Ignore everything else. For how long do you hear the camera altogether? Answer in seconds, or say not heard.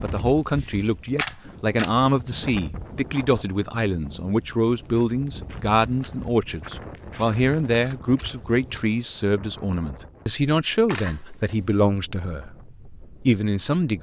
2 s.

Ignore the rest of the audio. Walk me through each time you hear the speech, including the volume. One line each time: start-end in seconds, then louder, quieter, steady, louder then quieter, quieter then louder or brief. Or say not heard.
0.0-13.9 steady.